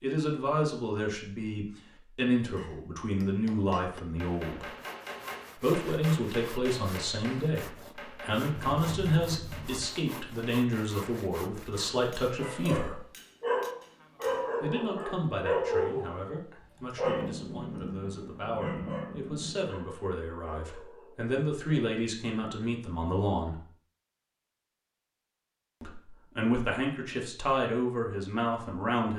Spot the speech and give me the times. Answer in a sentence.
The speech can be heard from 0.0 to 4.7 s, from 5.5 to 13.0 s, from 14.6 to 23.6 s and from 25.8 to 29.1 s.